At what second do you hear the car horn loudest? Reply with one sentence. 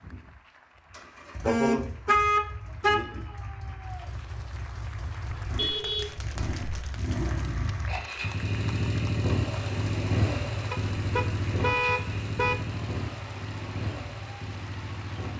The volume of the car horn peaks at 2 seconds.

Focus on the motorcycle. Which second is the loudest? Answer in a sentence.
The loudest moment of the motorcycle is at 10 seconds.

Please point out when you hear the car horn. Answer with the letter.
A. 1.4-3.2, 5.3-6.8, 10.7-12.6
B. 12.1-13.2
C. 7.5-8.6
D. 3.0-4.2
A.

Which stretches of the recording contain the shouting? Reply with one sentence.
The shouting can be heard from 3.0 to 4.2 s.